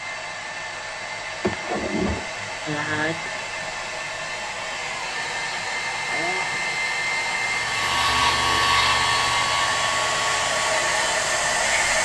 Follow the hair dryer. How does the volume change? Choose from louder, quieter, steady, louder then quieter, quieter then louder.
louder.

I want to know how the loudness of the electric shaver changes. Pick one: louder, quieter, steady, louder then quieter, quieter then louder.
quieter.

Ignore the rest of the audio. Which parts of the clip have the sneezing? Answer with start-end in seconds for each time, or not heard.
1.4-3.5, 6.0-6.6.